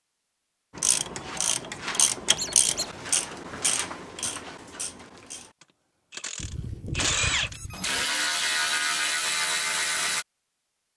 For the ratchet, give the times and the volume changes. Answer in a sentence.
You can hear the ratchet from 0.8 to 10.2 s, getting quieter then louder.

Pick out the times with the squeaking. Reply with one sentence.
You can hear the squeaking from 2.4 to 2.9 s and from 6.3 to 8.0 s.